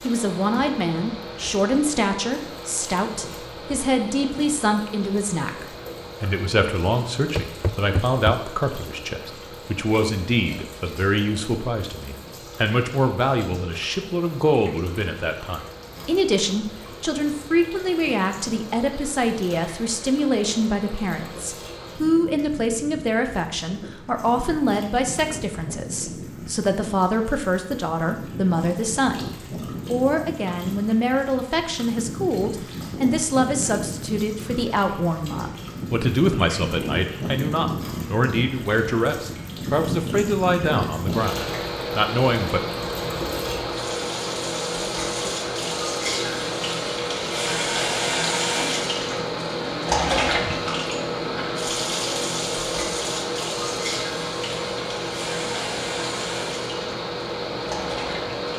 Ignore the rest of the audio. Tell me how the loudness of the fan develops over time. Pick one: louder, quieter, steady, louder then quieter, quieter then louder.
louder.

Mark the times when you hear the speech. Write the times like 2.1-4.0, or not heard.
0.0-42.6.